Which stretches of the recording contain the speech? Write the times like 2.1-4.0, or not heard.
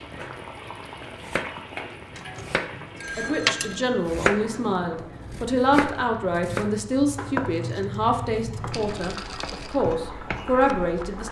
3.1-11.2.